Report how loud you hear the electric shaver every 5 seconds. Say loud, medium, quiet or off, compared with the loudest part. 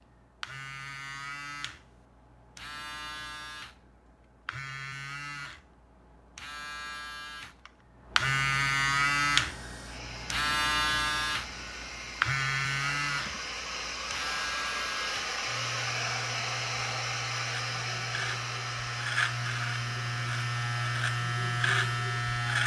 quiet, loud, loud, medium, loud.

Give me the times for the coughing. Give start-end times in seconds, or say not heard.
not heard.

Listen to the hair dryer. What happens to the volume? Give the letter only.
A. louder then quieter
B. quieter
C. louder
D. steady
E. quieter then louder
A.